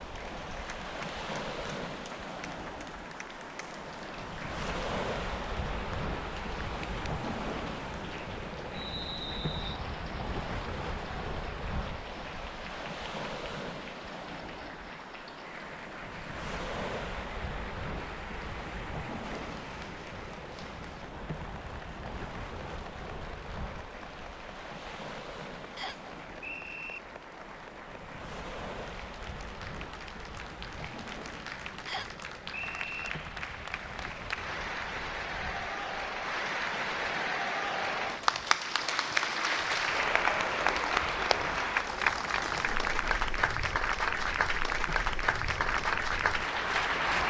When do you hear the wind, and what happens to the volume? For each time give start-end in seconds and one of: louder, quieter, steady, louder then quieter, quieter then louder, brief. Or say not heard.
0.0-47.2 quieter.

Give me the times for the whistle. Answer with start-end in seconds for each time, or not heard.
8.7-9.8, 25.8-27.0, 31.9-33.1.